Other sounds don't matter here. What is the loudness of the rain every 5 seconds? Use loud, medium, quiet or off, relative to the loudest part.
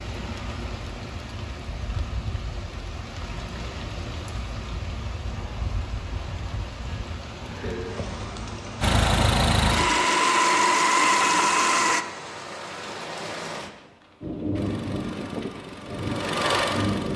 medium, medium, loud, loud.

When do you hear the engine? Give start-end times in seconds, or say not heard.
8.8-12.1, 14.6-17.1.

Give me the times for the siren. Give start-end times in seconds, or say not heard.
not heard.